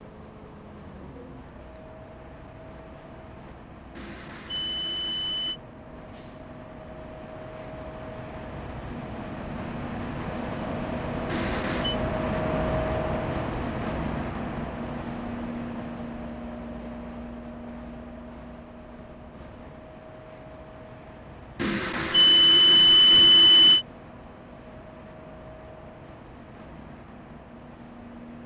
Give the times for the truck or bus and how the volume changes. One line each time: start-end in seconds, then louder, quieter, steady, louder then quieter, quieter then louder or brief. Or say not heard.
0.0-28.4 louder then quieter.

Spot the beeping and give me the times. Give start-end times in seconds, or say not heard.
4.0-5.6, 11.2-11.9, 21.6-23.9.